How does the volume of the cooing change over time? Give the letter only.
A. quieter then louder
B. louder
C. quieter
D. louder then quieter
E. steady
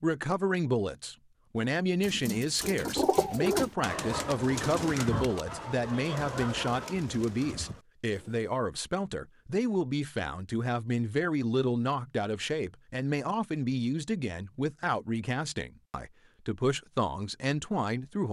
C.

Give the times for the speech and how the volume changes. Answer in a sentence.
The speech can be heard from 0.0 to 18.2 s, at a steady volume.